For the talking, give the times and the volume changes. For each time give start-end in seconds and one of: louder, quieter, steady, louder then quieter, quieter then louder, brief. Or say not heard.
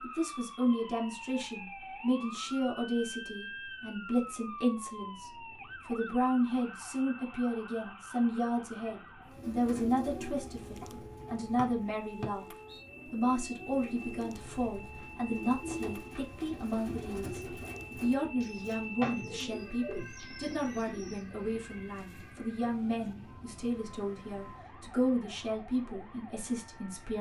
0.0-12.4 steady
13.1-27.1 steady.